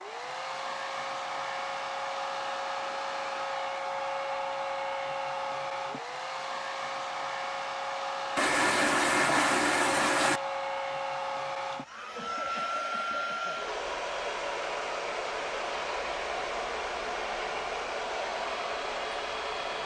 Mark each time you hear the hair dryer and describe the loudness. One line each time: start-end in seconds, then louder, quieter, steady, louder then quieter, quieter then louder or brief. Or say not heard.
0.0-19.8 steady.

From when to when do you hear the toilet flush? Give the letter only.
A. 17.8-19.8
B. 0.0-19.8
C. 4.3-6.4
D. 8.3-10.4
D.